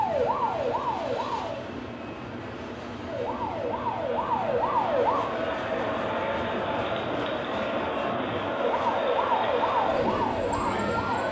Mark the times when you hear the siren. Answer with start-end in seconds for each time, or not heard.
0.0-1.6, 3.0-5.2, 8.8-11.2.